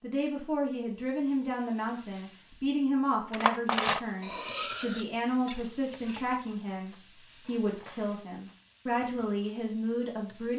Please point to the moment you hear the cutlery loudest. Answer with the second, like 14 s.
4 s.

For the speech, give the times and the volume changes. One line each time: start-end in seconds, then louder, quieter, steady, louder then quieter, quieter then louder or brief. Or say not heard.
0.0-10.5 steady.